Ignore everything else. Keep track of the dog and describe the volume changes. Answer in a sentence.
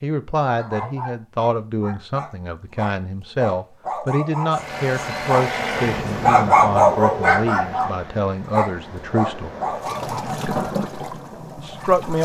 The loudness of the dog goes up, then down.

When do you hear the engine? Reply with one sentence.
You can hear the engine from 4.5 to 6.5 s.